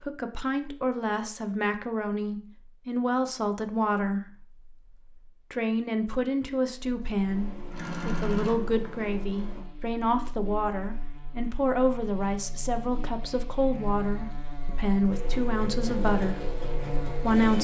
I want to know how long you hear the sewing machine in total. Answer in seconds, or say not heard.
5 s.